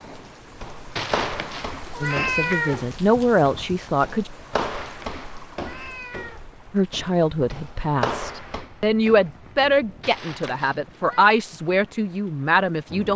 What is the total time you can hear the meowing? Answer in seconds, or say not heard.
5 s.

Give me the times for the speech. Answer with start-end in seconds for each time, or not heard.
2.0-4.3, 6.7-13.1.